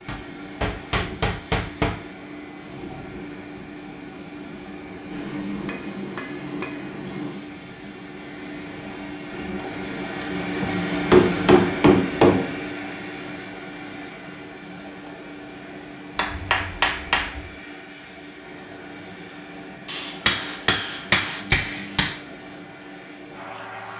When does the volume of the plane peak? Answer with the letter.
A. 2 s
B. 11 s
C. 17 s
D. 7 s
B.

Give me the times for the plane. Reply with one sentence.
You can hear the plane from 0.0 to 23.9 s.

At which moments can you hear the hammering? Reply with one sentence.
You can hear the hammering from 0.1 to 1.9 s, from 5.1 to 7.4 s, from 10.6 to 12.6 s, from 16.1 to 17.4 s and from 19.9 to 22.1 s.